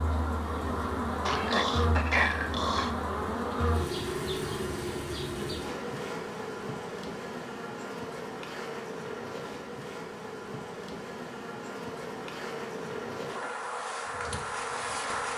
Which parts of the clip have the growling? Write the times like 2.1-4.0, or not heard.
1.2-3.0.